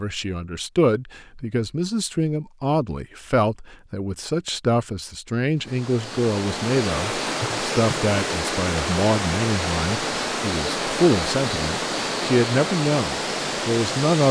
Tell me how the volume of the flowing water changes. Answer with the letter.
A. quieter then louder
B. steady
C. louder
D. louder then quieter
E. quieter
B.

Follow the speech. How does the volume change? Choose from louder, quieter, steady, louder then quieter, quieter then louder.
steady.